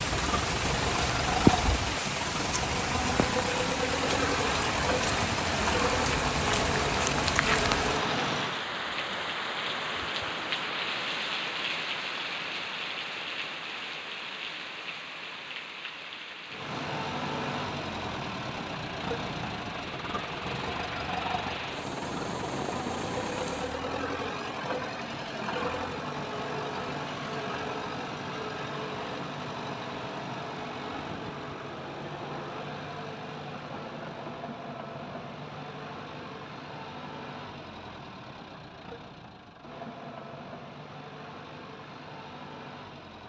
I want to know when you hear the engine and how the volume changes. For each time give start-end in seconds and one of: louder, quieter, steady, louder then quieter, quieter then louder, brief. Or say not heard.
0.0-8.7 steady
16.4-43.2 quieter.